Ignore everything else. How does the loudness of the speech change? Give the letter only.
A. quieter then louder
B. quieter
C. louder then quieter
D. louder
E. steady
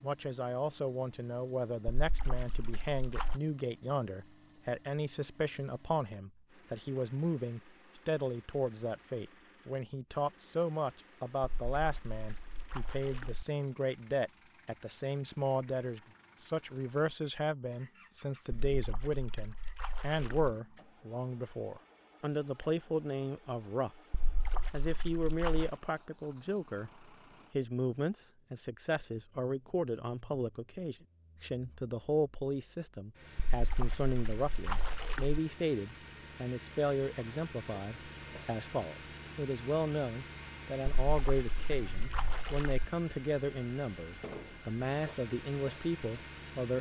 E.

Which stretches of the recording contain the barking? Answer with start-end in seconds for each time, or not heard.
not heard.